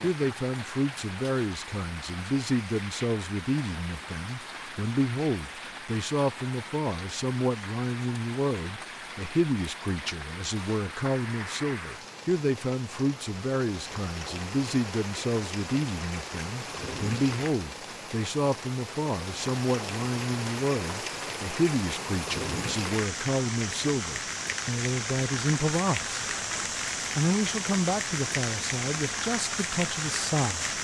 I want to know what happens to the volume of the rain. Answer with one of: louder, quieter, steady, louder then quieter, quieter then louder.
louder.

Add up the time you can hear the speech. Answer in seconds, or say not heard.
30 s.